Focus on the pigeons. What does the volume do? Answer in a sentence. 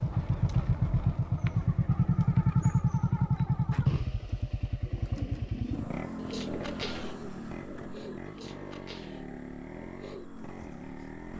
The volume of the pigeons goes down.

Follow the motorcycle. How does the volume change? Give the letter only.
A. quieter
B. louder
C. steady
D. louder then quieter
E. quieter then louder
A.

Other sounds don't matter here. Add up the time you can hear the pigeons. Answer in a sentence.
You can hear the pigeons for 6 seconds altogether.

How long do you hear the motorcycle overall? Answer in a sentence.
The motorcycle can be heard for 11 seconds in total.